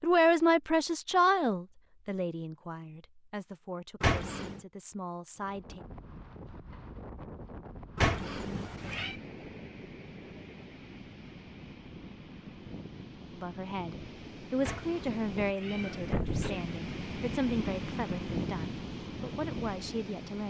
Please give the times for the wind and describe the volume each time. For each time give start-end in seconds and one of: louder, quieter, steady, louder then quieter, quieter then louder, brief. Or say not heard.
5.3-20.4 louder.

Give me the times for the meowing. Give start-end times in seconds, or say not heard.
4.0-4.6, 8.0-9.2, 14.6-16.0.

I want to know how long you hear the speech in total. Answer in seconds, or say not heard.
13 s.